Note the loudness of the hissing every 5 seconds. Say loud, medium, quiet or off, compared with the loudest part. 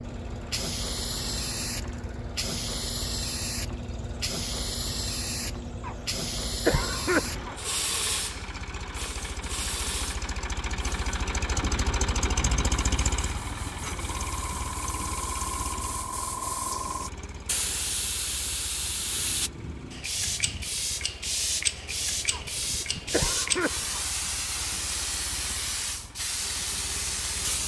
loud, loud, medium, loud, loud, loud.